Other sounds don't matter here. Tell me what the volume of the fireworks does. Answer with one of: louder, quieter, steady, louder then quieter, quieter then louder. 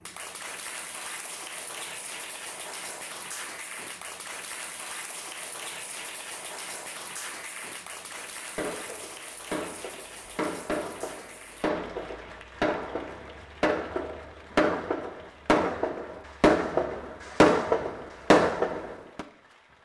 louder.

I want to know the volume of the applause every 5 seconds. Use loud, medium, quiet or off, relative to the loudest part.
loud, loud, medium, quiet.